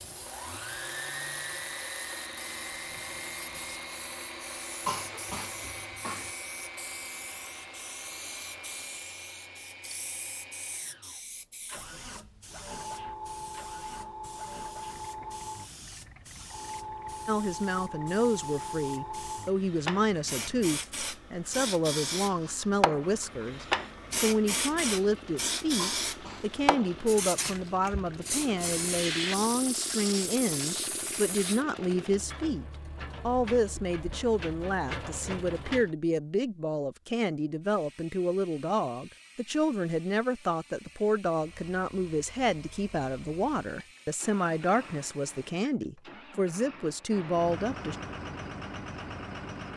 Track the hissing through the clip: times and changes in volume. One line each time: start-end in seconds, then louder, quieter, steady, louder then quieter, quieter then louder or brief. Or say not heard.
0.0-31.6 louder.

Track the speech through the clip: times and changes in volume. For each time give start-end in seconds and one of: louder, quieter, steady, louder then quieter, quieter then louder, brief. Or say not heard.
17.2-48.0 steady.